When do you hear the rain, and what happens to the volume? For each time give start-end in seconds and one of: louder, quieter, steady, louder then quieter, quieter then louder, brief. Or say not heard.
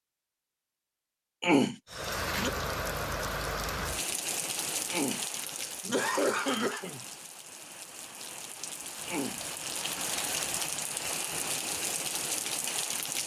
1.9-13.2 quieter then louder.